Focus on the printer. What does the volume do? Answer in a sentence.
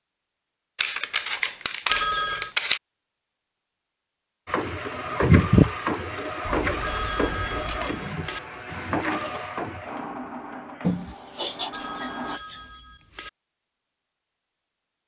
The loudness of the printer goes down.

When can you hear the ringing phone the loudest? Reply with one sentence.
The loudest moment of the ringing phone is at 2 seconds.